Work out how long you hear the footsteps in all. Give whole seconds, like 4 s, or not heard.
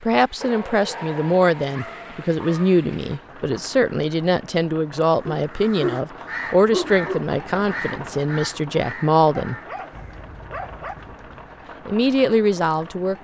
not heard.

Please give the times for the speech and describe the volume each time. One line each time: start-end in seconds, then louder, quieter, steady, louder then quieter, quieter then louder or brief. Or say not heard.
0.0-9.6 steady
11.8-13.1 brief.